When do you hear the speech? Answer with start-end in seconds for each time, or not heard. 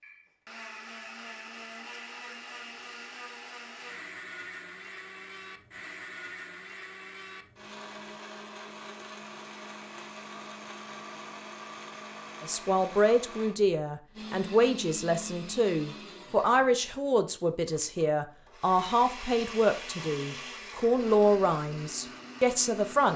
12.4-23.1.